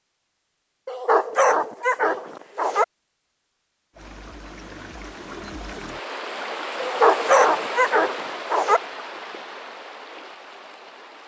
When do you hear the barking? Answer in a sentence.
You can hear the barking from 0.8 to 2.9 s and from 6.8 to 8.8 s.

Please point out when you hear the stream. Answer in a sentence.
You can hear the stream from 3.9 to 11.2 s.